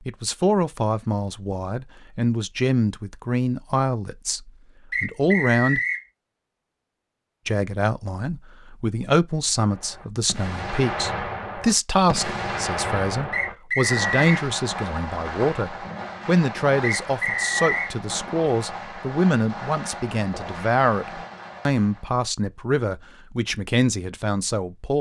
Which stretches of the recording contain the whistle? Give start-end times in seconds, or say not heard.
4.9-6.0, 13.3-14.3, 16.8-17.9.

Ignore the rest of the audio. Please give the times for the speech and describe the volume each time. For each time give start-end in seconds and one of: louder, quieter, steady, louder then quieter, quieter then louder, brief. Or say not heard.
0.1-5.8 steady
7.5-24.9 steady.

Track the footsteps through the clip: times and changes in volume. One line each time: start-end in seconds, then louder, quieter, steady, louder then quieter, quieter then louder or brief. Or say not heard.
not heard.